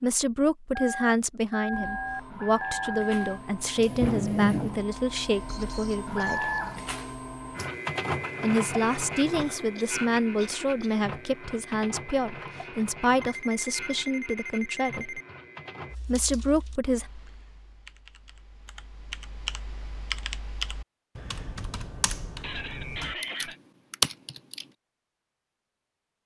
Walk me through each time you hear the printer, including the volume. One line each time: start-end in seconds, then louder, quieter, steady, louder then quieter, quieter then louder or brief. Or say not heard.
1.7-15.9 quieter.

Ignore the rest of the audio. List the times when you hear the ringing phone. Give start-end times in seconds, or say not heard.
0.8-3.4, 13.2-15.2.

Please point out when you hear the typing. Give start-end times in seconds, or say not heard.
15.8-24.7.